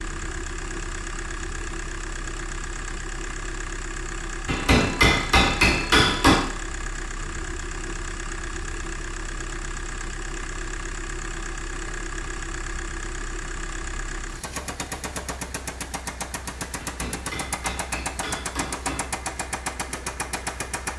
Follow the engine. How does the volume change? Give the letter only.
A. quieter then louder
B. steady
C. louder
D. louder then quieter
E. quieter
B.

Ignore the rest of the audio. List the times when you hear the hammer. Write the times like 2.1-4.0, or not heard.
4.5-6.4, 16.8-19.1.